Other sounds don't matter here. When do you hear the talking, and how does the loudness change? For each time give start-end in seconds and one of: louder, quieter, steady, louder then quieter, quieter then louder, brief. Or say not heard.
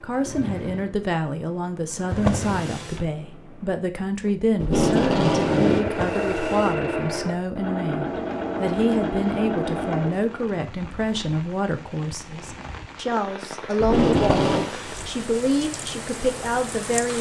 0.0-17.1 steady.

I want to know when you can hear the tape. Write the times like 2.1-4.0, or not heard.
4.6-5.8, 13.8-14.7.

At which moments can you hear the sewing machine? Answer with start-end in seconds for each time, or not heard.
0.0-10.6.